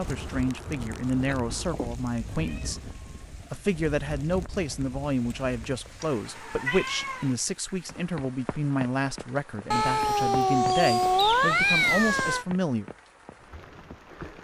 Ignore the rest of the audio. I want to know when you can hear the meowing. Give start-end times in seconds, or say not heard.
1.2-3.2, 6.0-7.3, 9.7-12.4.